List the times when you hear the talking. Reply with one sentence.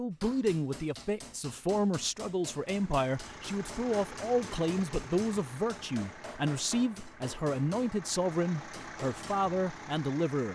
You can hear the talking from 0.0 to 10.4 s.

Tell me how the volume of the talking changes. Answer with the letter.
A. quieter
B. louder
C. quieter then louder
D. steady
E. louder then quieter
D.